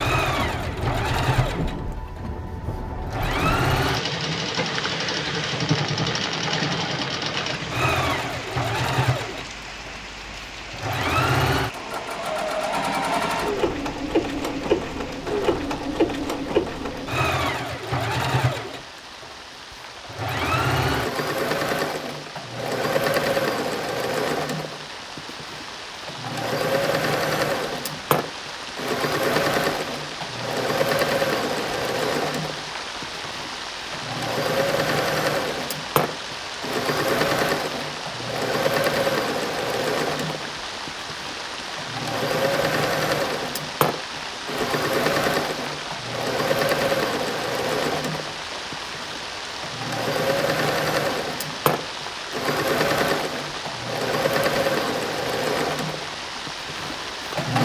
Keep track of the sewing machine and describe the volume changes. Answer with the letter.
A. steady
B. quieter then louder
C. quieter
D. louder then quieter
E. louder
A.